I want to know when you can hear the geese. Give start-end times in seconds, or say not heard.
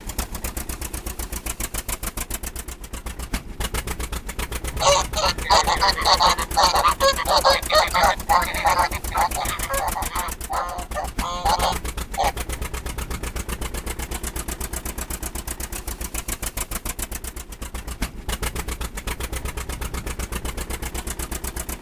4.7-12.3.